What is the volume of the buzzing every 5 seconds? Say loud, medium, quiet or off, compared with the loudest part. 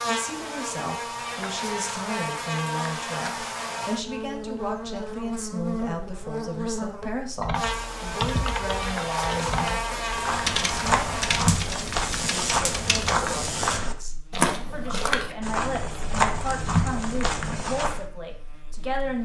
loud, loud, loud, quiet.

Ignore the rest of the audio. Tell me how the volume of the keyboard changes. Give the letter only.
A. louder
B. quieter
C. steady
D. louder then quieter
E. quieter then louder
B.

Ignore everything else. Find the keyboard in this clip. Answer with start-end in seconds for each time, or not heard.
7.4-13.2.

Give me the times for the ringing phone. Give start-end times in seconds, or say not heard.
not heard.